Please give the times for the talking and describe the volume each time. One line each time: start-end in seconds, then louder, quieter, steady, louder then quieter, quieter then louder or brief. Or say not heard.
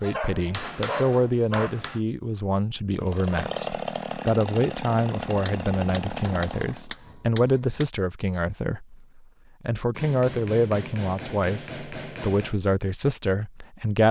0.0-14.0 steady.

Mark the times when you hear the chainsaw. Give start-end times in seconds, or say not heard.
2.9-6.9.